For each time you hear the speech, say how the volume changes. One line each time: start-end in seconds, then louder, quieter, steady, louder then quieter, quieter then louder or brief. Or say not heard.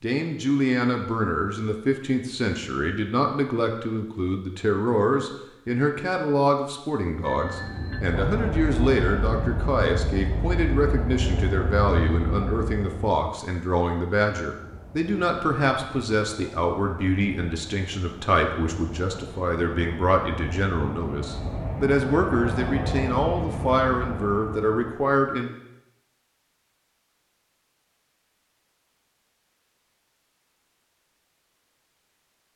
0.0-25.5 steady.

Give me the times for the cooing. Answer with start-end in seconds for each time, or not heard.
not heard.